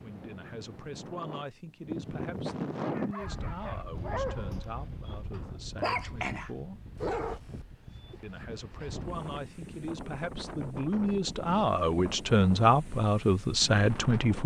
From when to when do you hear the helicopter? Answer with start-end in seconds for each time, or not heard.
not heard.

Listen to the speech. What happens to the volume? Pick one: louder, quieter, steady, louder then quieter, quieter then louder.
louder.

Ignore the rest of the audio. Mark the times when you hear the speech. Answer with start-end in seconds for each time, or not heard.
0.0-6.8, 8.2-14.4.